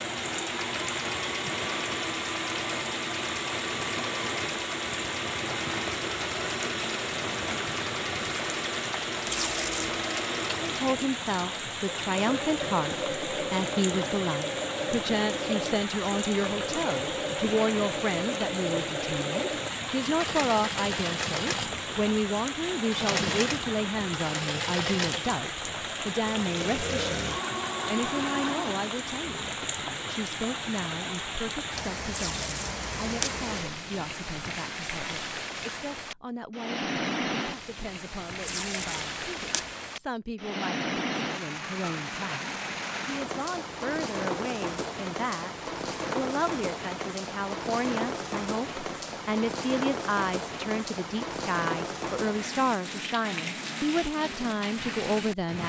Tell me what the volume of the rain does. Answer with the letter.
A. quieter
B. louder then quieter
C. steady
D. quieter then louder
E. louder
C.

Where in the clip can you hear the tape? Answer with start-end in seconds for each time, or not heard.
9.2-9.9, 32.1-33.4, 38.4-39.6.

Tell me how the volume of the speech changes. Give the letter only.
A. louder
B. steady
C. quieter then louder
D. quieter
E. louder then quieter
C.